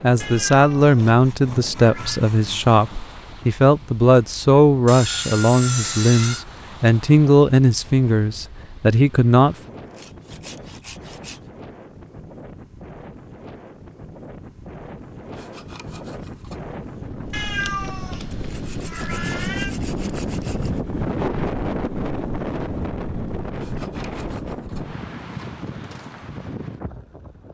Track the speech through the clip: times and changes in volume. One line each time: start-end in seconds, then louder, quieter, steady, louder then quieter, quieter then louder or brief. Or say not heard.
0.0-9.6 steady.